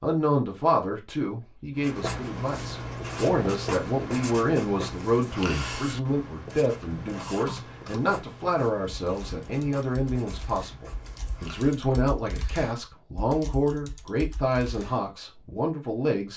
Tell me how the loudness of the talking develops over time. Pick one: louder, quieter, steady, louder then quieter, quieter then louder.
steady.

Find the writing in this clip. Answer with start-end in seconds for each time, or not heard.
1.8-11.8.